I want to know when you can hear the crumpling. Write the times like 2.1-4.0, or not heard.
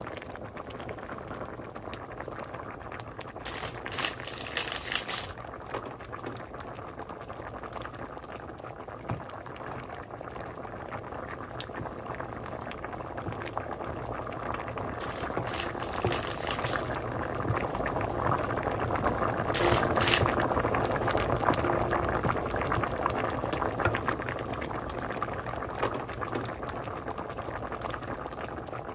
3.5-5.3, 15.0-16.9, 19.5-20.2.